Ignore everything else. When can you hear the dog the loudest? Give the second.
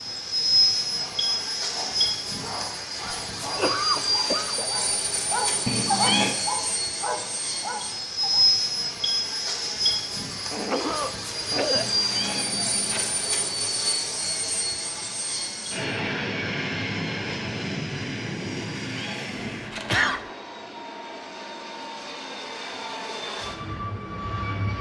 6 s.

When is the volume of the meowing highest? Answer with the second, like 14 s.
6 s.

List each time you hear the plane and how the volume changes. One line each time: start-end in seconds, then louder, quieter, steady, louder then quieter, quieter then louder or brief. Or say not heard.
0.0-24.7 quieter.